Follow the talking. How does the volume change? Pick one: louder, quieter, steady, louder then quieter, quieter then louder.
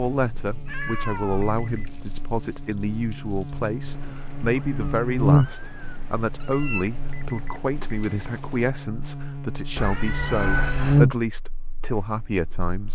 steady.